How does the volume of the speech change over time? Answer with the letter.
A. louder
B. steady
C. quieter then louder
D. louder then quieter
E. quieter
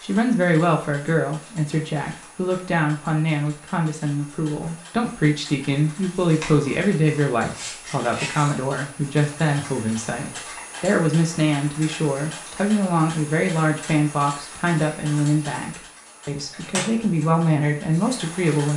B.